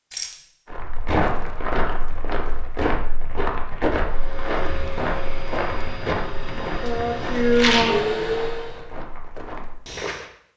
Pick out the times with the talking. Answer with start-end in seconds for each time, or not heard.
not heard.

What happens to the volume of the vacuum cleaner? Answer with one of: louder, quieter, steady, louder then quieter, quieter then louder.
louder.